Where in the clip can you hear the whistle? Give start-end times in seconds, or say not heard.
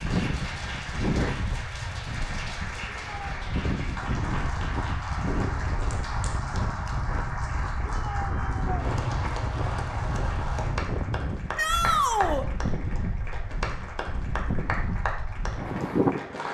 not heard.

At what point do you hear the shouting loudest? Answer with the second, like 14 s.
12 s.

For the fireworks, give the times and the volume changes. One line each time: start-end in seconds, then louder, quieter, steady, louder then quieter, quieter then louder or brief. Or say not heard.
not heard.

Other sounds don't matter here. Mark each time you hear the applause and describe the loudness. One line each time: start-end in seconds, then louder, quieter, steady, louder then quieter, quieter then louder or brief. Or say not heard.
0.0-16.5 steady.